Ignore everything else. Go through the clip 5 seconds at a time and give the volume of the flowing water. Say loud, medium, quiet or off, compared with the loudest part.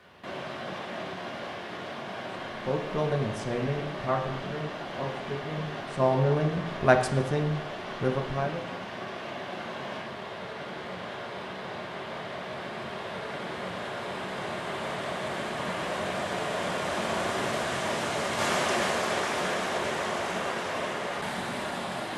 medium, medium, medium, loud, loud.